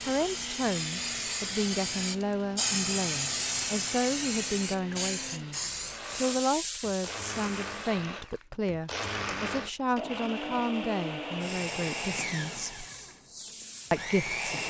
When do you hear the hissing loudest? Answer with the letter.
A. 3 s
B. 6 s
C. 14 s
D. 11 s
A.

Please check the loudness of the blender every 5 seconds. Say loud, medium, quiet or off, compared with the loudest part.
medium, loud, loud.